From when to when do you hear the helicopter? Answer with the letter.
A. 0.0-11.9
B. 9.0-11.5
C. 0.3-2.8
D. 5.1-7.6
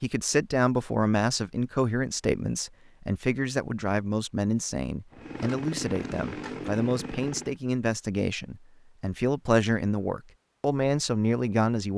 D.